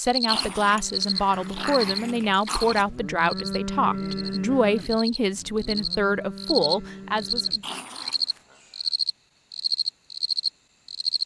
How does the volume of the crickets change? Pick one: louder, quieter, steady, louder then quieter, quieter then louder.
quieter then louder.